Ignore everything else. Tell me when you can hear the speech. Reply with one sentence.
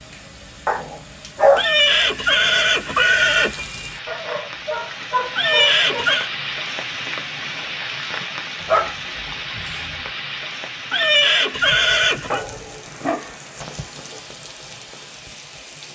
The speech can't be heard in this clip.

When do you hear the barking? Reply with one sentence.
The barking can be heard from 0.7 to 1.6 s, from 4.0 to 6.0 s, from 8.6 to 10.0 s and from 12.3 to 14.2 s.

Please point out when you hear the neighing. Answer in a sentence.
The neighing can be heard from 1.6 to 3.6 s, from 5.3 to 6.3 s and from 10.9 to 12.4 s.